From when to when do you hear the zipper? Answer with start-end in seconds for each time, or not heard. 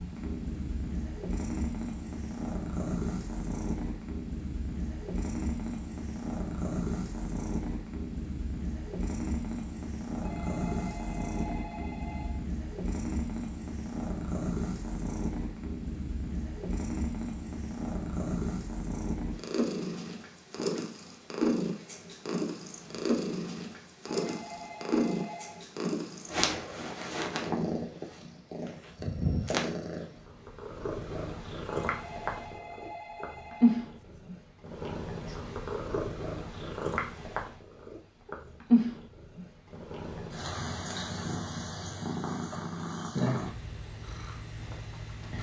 not heard.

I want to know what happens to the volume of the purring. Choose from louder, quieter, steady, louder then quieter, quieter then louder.
steady.